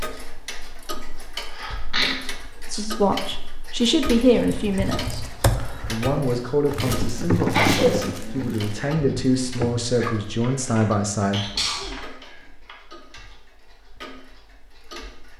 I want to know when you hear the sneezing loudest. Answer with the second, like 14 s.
8 s.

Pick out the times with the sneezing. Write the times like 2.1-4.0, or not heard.
1.5-2.2, 7.5-8.0, 11.3-12.0.